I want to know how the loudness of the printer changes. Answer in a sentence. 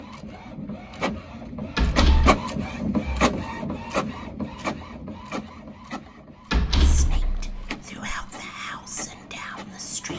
The loudness of the printer goes up, then down.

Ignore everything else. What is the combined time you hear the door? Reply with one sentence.
You can hear the door for 2 seconds altogether.